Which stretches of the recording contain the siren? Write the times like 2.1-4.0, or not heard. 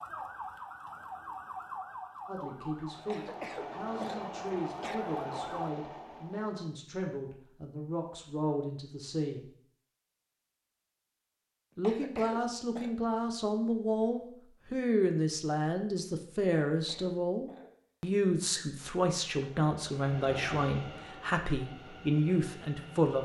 0.0-5.8.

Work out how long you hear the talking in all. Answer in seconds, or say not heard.
19 s.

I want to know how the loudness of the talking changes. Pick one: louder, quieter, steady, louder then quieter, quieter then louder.
louder.